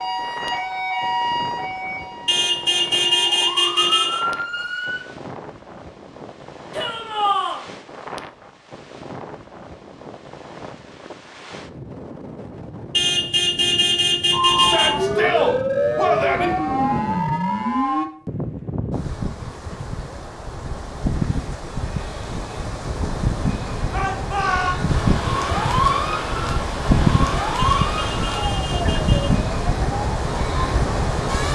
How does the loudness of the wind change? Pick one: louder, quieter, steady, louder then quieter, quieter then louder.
louder.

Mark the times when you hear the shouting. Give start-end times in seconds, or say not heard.
6.7-7.6, 14.6-16.5, 23.9-24.8.